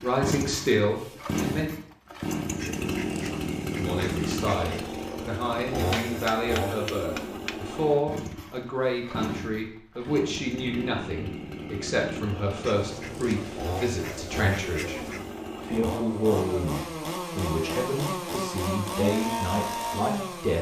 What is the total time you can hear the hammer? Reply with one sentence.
You can hear the hammer for 2 seconds altogether.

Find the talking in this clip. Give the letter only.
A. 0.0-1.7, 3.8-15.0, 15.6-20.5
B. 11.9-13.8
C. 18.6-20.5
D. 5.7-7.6
A.